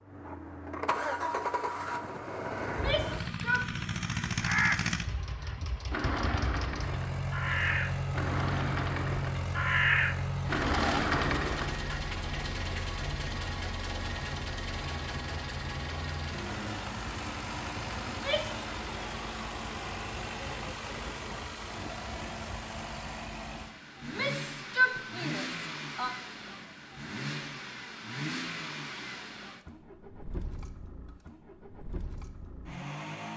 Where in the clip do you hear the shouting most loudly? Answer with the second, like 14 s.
25 s.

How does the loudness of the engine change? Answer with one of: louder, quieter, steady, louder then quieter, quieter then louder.
quieter.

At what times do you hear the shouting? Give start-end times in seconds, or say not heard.
2.6-3.6, 18.1-18.6, 24.0-26.1.